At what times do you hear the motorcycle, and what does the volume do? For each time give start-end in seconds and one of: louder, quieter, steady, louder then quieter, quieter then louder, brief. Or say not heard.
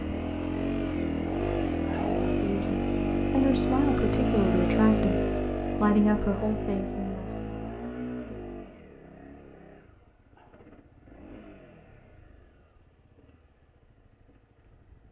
0.0-15.0 quieter.